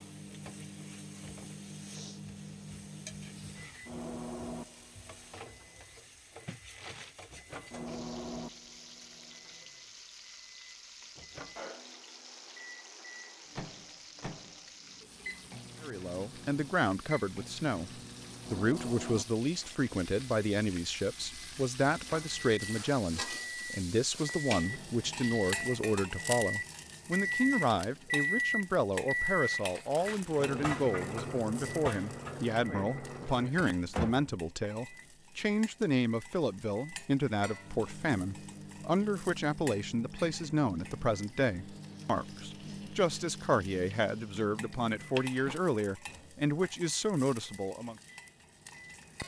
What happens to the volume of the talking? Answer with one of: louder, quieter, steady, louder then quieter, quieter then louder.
steady.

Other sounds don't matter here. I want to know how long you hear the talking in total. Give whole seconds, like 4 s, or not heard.
32 s.